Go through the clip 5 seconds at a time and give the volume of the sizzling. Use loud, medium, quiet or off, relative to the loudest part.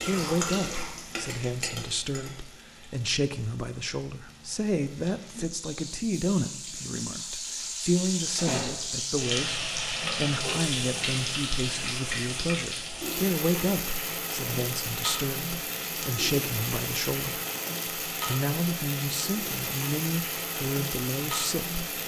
medium, loud, loud, loud, loud.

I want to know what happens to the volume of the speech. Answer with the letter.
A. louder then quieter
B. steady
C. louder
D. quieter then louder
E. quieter
B.